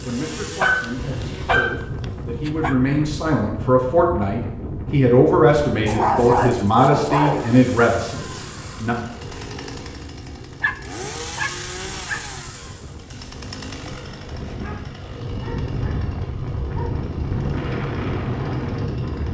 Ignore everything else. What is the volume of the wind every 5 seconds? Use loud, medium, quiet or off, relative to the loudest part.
medium, medium, quiet, loud.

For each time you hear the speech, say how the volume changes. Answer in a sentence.
The speech can be heard from 0.0 to 8.9 s, getting louder.